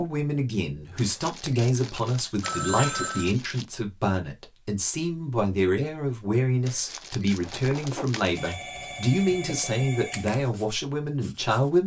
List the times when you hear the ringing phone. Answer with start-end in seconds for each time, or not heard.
2.4-3.3, 8.3-10.3.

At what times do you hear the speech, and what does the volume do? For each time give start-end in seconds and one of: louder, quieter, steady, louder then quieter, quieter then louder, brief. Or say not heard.
0.0-11.8 steady.